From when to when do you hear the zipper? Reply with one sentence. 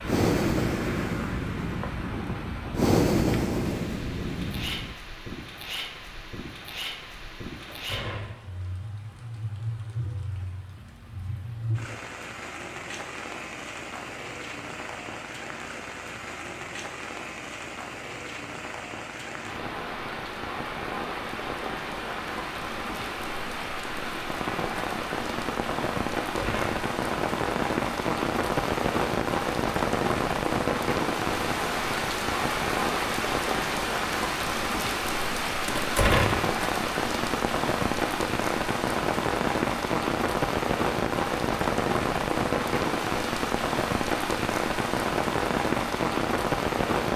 The zipper can't be heard in this clip.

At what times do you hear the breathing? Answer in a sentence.
You can hear the breathing from 0.0 to 5.0 s.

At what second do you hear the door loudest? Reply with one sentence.
The loudest moment of the door is at 36 seconds.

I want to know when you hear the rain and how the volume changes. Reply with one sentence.
The rain can be heard from 0.0 to 47.1 s, getting louder.